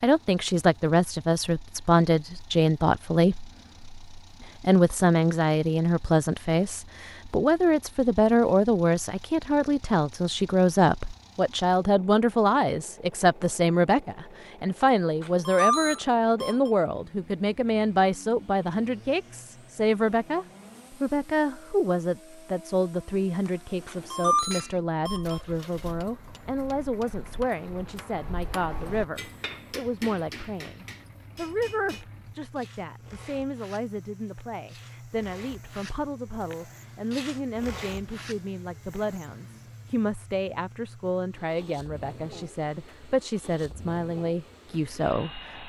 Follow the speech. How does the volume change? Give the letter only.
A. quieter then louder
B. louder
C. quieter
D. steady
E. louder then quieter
C.